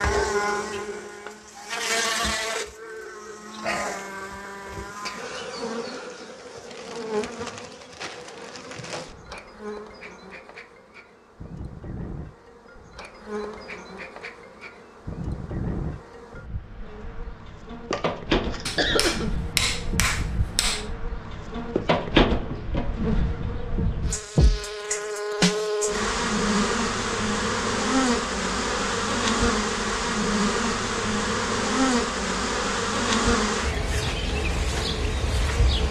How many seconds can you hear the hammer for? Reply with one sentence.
The hammer can be heard for 2 seconds in total.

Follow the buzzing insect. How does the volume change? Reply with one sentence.
The volume of the buzzing insect goes down, then up.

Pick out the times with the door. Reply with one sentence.
The door can't be heard in this clip.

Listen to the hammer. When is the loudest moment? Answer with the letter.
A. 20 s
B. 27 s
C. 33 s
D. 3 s
A.